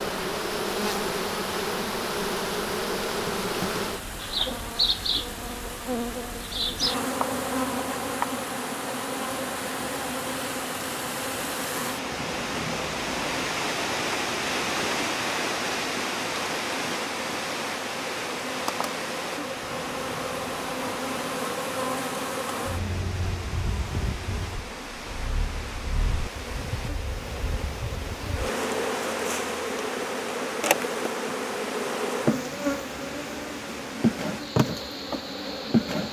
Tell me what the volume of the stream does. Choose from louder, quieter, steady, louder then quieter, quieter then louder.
louder then quieter.